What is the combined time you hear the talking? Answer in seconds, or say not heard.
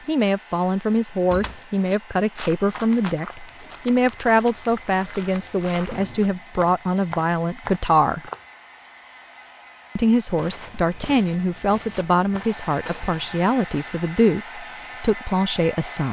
14 s.